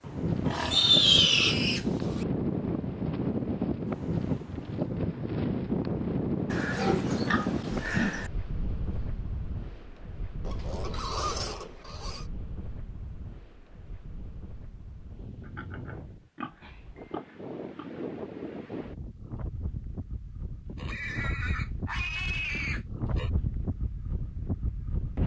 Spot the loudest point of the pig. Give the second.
1 s.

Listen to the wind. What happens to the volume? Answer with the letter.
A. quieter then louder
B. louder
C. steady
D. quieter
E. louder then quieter
A.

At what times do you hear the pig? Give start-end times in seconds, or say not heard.
0.5-2.2, 6.5-8.3, 10.4-12.2, 15.4-18.0, 20.8-23.3.